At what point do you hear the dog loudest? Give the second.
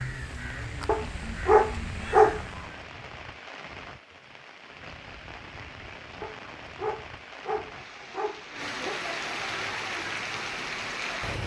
2 s.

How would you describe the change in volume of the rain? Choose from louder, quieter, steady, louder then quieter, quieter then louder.
louder.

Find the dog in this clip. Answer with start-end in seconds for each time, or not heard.
0.8-2.4, 6.2-9.0.